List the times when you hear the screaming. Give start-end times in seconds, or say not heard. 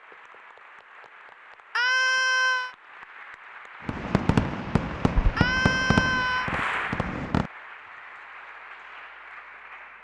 1.8-2.8, 5.3-6.5.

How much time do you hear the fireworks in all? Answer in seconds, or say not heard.
4 s.